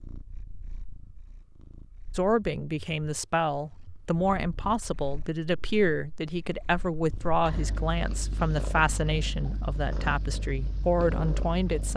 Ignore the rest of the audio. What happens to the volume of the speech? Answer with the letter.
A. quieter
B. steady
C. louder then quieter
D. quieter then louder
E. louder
B.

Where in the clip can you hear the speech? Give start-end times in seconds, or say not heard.
2.1-11.9.